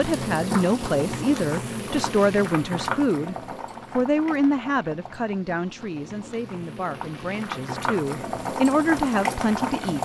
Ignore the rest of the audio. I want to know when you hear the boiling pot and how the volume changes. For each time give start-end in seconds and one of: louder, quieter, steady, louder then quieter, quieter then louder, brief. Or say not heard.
0.0-10.0 quieter then louder.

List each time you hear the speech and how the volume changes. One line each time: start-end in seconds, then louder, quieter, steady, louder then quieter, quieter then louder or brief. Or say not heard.
0.0-10.0 quieter then louder.